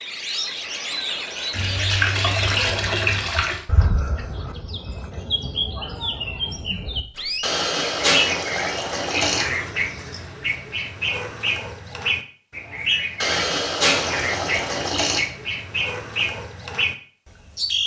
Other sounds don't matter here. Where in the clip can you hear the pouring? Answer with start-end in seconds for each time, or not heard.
1.5-3.6, 7.4-9.4, 13.2-15.2.